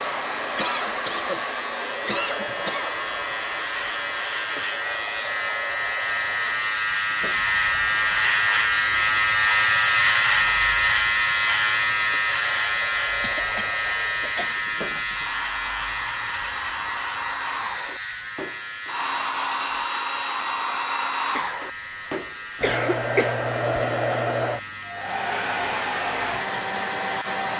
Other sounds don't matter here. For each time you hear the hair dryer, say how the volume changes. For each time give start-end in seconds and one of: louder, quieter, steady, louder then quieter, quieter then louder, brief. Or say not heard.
0.0-27.5 quieter then louder.